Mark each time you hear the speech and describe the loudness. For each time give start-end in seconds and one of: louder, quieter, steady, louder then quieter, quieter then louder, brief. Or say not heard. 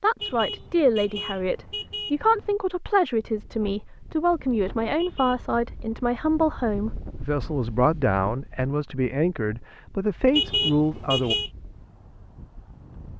0.0-11.3 steady.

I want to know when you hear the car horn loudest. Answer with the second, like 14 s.
11 s.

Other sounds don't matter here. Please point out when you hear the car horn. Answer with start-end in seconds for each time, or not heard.
0.2-2.5, 5.0-5.5, 10.3-11.5.